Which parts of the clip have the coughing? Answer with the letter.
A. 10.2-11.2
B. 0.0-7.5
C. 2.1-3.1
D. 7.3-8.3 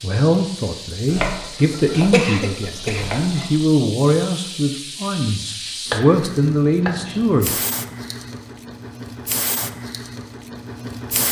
C.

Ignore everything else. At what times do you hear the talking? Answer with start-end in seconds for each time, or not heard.
0.0-7.5.